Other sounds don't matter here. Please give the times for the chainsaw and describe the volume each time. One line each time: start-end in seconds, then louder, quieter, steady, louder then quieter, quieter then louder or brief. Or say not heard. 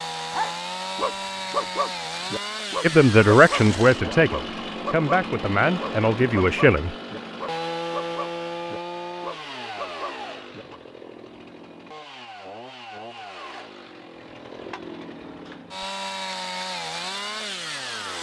0.0-18.1 quieter then louder.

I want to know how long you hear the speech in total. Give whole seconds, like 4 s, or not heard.
4 s.